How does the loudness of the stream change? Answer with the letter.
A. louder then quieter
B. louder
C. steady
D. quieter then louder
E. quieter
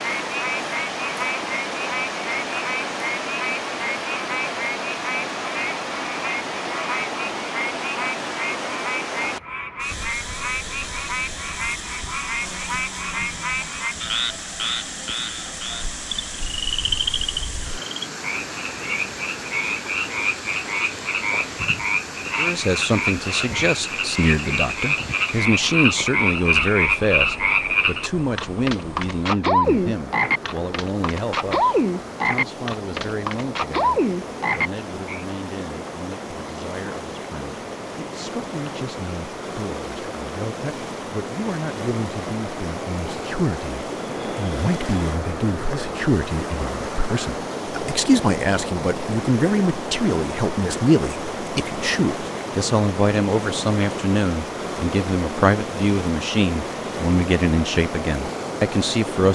D.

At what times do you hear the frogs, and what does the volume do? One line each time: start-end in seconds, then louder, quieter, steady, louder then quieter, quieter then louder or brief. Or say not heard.
0.0-35.2 louder.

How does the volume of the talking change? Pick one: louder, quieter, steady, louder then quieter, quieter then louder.
quieter then louder.